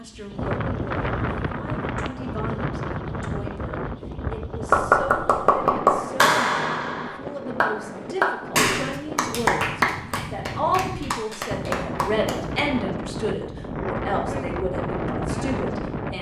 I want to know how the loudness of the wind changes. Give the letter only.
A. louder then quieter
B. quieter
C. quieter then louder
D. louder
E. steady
C.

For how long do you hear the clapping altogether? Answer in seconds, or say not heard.
8 s.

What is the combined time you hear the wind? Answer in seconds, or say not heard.
16 s.